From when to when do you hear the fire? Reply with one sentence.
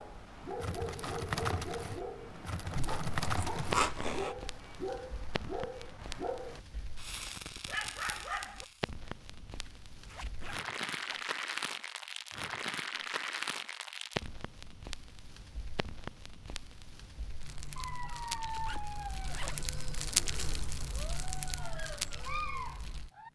You can hear the fire from 0.0 to 23.1 s.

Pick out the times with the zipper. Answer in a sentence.
The zipper can be heard from 2.9 to 4.3 s, from 10.1 to 11.2 s and from 18.6 to 20.6 s.